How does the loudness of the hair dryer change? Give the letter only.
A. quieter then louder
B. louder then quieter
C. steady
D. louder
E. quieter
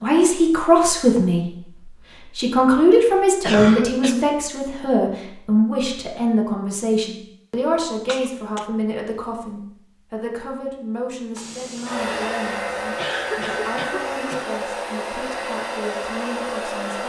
C.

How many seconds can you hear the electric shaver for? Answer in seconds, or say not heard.
not heard.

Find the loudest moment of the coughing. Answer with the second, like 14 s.
4 s.